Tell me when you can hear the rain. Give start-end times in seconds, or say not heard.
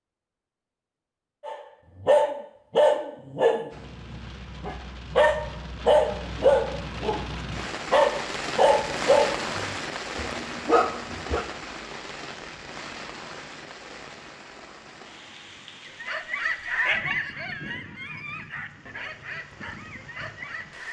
3.7-20.8.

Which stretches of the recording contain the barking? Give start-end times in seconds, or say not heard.
1.4-11.4, 15.8-20.8.